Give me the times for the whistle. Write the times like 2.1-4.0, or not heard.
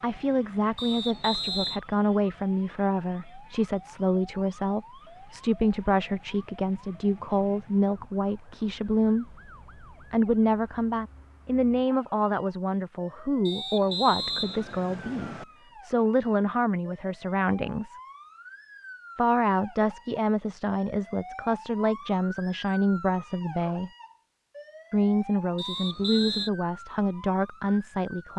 0.8-1.8, 13.4-15.4, 25.6-26.5.